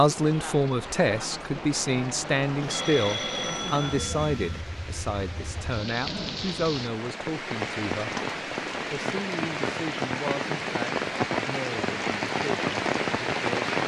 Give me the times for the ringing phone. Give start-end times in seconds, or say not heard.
2.6-4.7.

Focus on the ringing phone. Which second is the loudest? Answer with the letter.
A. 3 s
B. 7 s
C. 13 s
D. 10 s
A.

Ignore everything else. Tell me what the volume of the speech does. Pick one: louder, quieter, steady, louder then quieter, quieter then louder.
quieter.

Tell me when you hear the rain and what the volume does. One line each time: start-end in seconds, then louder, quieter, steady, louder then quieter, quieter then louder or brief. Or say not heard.
0.0-13.8 louder.